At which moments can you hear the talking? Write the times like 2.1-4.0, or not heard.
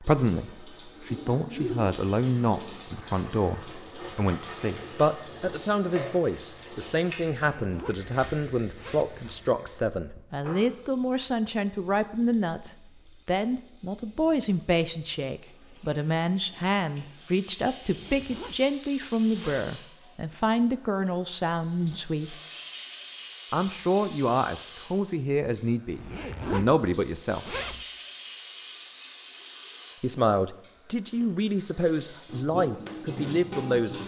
0.0-22.4, 23.5-27.6, 30.0-34.0.